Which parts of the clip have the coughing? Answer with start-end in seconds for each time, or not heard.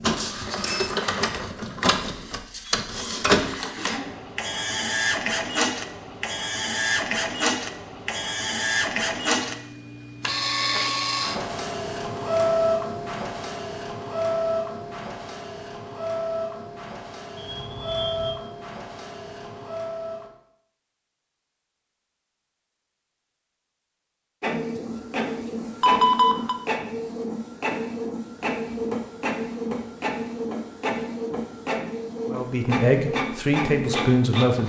3.6-4.3.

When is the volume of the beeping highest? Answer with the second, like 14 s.
26 s.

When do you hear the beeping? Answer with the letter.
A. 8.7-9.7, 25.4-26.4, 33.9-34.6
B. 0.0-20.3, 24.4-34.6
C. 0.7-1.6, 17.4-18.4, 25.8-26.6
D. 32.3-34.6
C.